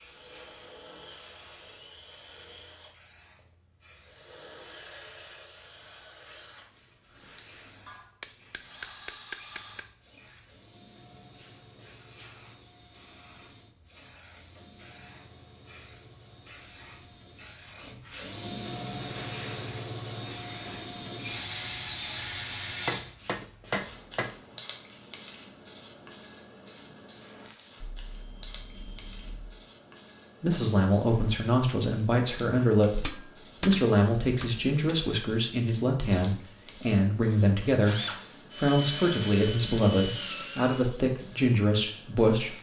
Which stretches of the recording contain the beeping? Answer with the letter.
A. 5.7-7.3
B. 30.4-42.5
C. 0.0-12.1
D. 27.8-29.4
D.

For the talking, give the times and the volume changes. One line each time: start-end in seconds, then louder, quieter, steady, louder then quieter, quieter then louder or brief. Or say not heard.
30.4-42.5 steady.